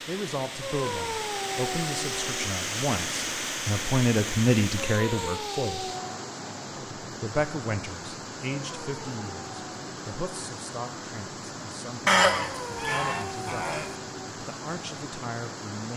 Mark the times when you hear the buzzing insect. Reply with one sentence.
You can't hear the buzzing insect here.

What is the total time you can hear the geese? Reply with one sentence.
You can hear the geese for 2 seconds altogether.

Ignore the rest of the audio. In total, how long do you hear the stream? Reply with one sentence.
The stream can be heard for 16 seconds in total.